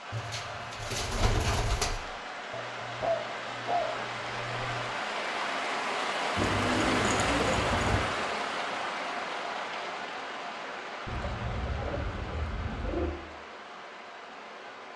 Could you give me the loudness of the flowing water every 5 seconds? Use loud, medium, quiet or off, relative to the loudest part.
medium, loud, medium.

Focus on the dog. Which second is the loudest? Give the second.
3 s.